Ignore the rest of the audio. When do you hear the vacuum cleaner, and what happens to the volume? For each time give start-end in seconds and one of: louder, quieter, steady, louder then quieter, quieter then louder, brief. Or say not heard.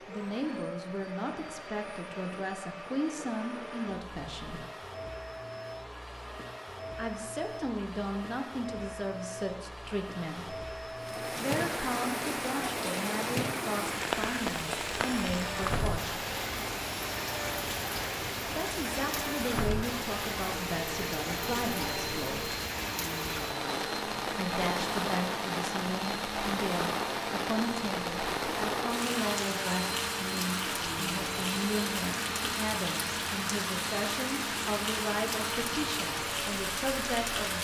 0.0-37.5 steady.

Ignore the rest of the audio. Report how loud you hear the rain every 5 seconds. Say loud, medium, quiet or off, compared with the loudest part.
off, off, loud, loud, loud, loud, loud, loud.